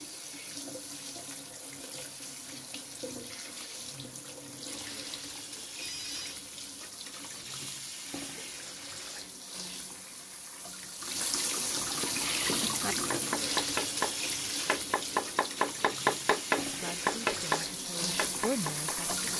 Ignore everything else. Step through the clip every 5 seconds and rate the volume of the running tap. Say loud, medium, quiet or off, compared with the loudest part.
medium, medium, loud, loud.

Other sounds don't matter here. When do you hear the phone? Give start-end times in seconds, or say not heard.
5.8-6.4.